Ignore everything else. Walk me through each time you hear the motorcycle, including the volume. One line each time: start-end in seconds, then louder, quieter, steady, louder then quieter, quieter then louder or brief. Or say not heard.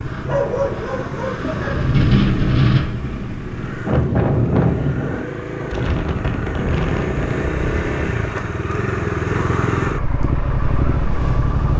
0.0-11.7 louder.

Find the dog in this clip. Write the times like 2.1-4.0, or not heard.
0.2-1.9.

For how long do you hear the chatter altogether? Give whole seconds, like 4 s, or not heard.
not heard.